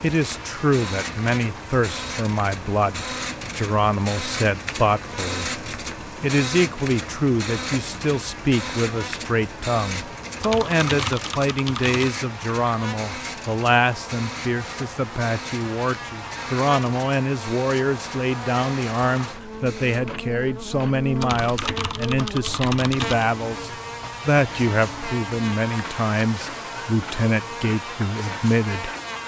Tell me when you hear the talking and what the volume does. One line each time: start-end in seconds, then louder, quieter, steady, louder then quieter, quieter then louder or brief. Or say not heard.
0.0-28.9 steady.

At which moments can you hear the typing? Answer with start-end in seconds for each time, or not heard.
10.4-12.1, 21.1-23.3.